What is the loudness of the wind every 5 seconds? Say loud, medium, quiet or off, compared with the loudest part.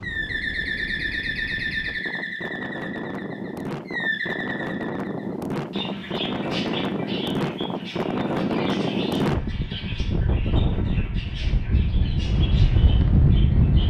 medium, loud, loud.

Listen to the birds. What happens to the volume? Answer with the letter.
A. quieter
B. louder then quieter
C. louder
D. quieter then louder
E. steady
A.